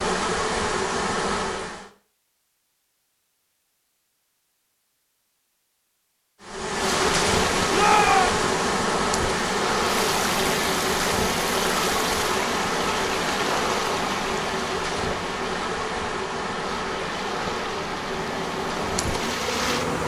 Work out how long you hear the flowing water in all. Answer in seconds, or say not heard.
13 s.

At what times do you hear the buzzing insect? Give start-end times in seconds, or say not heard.
0.0-1.9, 6.4-20.0.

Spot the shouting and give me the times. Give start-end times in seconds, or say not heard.
7.7-8.3.